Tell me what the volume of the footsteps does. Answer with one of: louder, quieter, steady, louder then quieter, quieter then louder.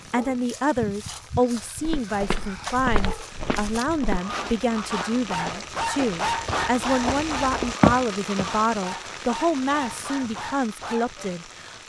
quieter then louder.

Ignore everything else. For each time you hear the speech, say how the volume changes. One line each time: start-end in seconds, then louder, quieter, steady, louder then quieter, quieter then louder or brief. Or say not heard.
0.1-11.8 steady.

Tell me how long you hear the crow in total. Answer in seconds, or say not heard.
not heard.